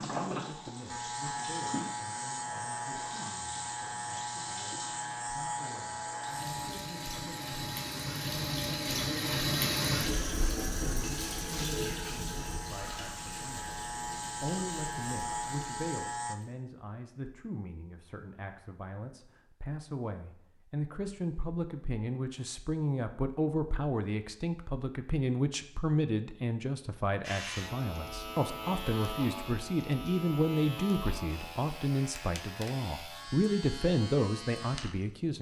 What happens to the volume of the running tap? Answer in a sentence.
The volume of the running tap goes up, then down.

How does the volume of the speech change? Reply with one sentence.
The volume of the speech goes up.